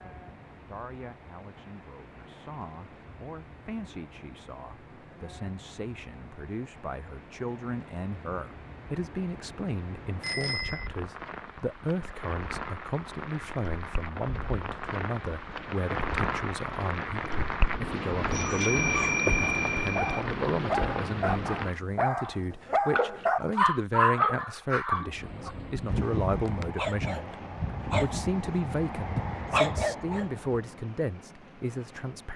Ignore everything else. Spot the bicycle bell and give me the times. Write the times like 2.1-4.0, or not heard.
10.2-10.9, 18.3-20.2.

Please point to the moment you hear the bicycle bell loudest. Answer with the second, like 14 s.
19 s.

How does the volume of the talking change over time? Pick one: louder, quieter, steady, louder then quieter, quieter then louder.
louder.